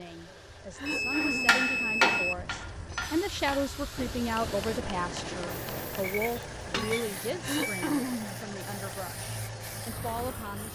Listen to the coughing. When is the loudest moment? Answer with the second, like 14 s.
8 s.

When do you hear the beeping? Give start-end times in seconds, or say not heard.
0.8-2.4, 6.0-7.9.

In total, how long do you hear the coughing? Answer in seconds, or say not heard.
2 s.